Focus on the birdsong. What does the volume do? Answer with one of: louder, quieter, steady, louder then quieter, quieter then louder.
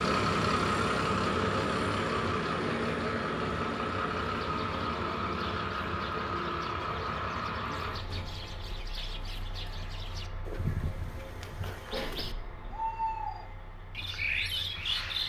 louder.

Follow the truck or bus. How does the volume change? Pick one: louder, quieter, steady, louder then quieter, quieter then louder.
quieter.